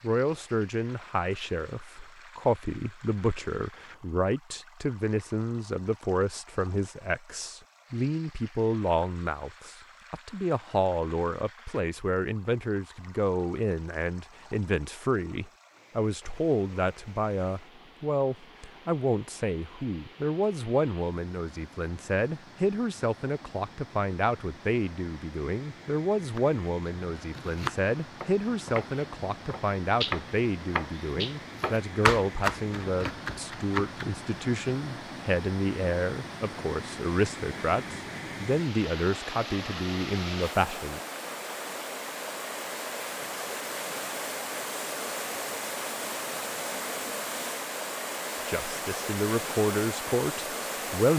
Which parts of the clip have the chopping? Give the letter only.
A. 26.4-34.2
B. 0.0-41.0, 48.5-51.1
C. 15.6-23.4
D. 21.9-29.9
A.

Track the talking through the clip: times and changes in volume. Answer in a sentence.
You can hear the talking from 0.0 to 41.0 s, at a steady volume; and briefly from 48.5 to 51.1 s.